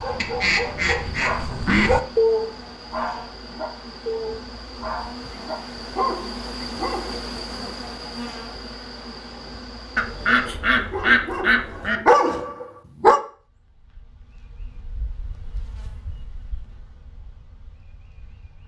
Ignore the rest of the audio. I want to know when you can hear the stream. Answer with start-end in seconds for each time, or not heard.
not heard.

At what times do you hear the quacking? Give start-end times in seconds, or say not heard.
0.2-1.9, 9.9-12.0.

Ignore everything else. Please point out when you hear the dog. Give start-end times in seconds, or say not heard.
0.0-7.2, 10.9-13.2.